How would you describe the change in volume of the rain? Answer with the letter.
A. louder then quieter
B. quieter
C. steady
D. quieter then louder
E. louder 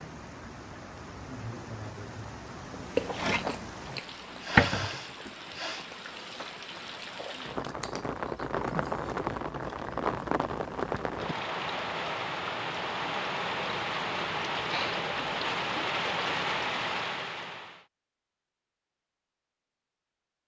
E.